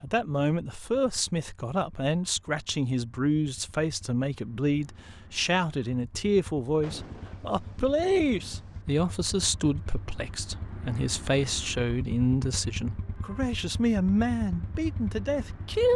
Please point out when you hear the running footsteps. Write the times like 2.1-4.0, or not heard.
not heard.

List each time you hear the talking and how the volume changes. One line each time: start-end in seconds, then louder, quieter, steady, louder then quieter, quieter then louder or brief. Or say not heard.
0.0-15.9 steady.